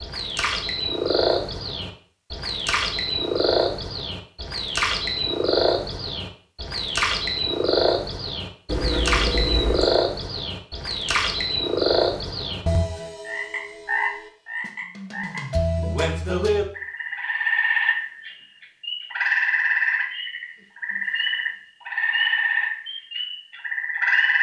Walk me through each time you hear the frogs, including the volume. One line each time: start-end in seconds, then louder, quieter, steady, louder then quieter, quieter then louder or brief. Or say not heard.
0.0-24.3 steady.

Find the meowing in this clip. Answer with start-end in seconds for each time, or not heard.
8.7-9.9.